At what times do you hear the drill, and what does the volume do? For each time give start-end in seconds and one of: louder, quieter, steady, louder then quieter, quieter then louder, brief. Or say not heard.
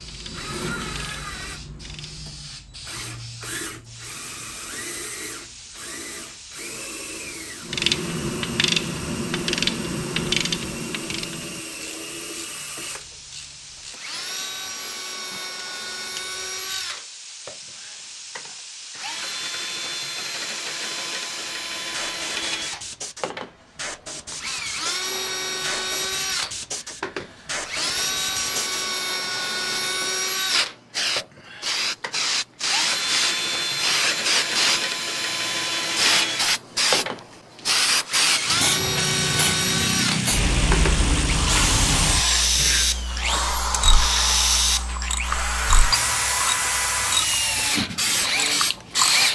0.0-49.3 louder.